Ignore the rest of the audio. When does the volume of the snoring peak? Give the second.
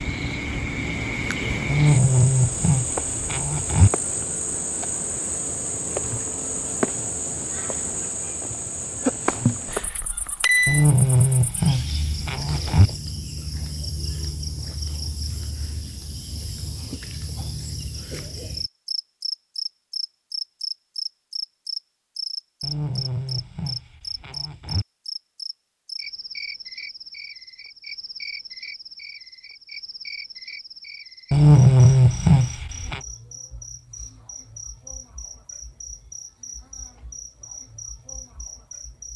32 s.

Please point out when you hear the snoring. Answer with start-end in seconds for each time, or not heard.
1.6-3.9, 10.7-12.9, 22.6-24.9, 31.3-33.0.